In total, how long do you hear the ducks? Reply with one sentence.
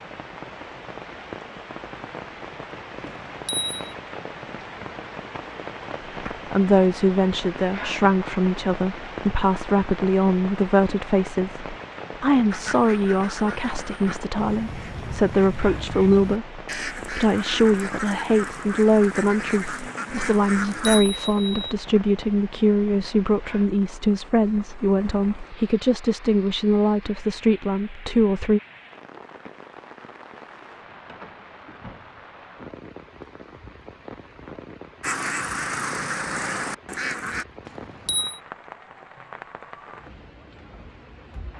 The ducks can be heard for 11 seconds in total.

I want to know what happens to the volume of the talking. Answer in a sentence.
The volume of the talking stays about the same.